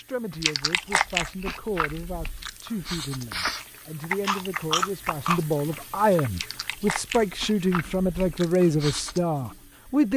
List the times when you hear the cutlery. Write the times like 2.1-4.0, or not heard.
not heard.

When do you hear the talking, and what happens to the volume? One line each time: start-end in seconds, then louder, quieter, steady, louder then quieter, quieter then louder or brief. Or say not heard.
0.0-10.1 louder.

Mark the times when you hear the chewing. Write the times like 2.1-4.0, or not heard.
0.4-9.2.